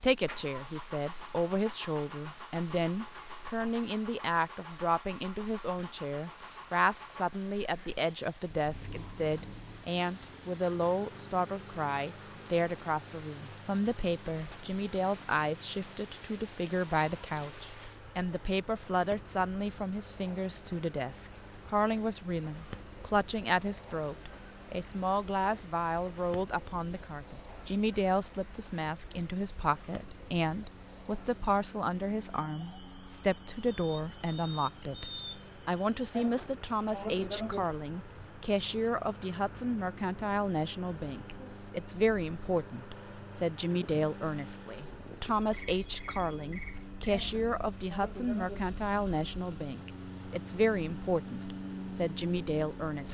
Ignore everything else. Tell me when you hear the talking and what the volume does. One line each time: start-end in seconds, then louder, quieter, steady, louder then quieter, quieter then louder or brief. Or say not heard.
0.0-53.0 steady.